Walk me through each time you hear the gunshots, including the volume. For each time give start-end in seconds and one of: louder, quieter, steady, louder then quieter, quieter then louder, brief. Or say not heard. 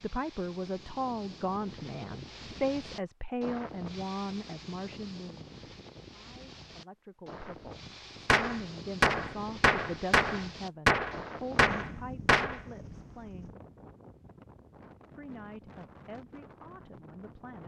8.2-12.6 steady.